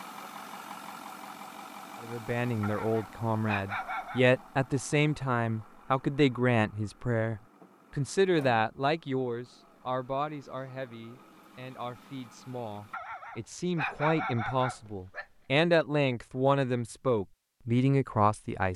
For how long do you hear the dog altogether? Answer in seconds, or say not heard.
4 s.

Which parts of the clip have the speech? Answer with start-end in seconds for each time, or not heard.
2.0-18.7.